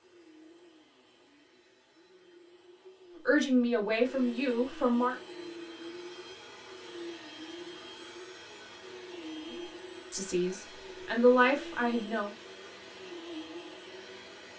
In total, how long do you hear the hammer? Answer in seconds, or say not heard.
not heard.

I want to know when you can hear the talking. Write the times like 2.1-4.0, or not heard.
3.2-5.2, 9.5-12.3.